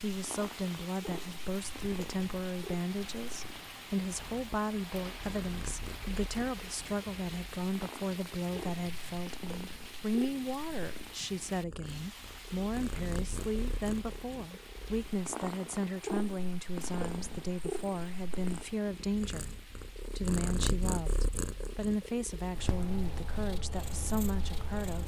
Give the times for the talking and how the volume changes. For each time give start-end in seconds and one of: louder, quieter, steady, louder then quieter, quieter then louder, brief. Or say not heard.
0.0-25.0 steady.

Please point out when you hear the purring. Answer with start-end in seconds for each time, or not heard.
0.1-25.0.